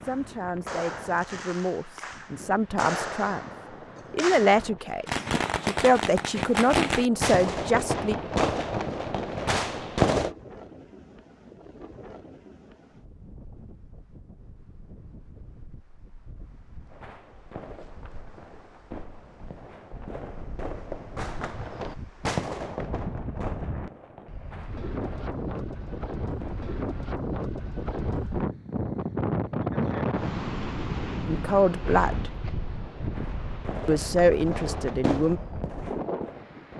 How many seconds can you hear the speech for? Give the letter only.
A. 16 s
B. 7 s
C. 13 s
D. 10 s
D.